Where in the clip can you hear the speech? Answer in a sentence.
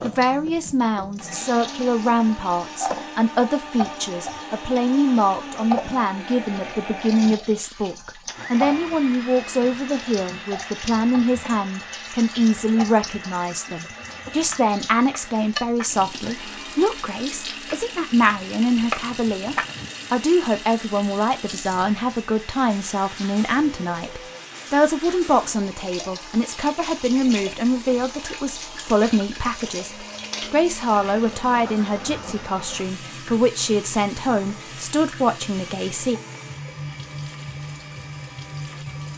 You can hear the speech from 0.0 to 36.2 s.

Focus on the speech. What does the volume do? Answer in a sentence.
The loudness of the speech stays about the same.